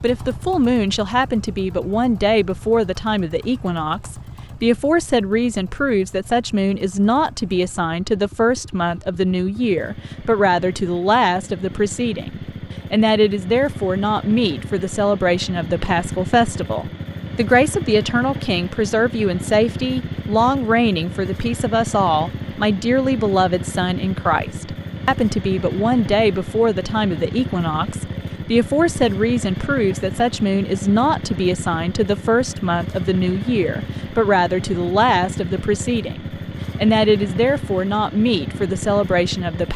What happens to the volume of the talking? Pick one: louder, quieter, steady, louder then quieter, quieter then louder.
steady.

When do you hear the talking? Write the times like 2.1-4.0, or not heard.
0.0-39.7.